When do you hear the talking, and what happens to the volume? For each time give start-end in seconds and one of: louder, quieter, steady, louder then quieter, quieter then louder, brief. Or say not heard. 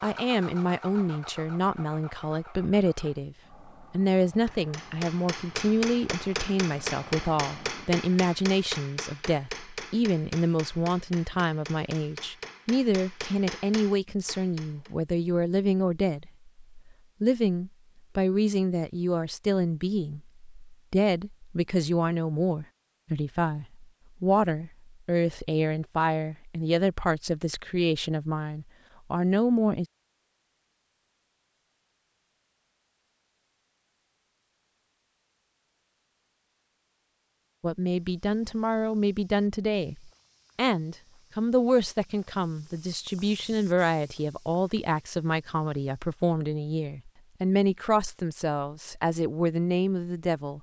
0.0-29.9 steady
37.6-50.5 steady.